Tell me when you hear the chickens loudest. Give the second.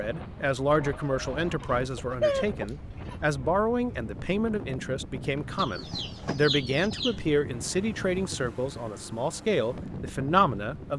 2 s.